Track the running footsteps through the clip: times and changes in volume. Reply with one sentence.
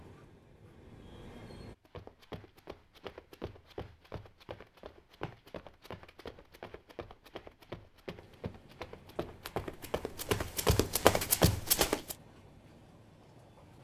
The running footsteps can be heard from 1.8 to 12.2 s, getting louder.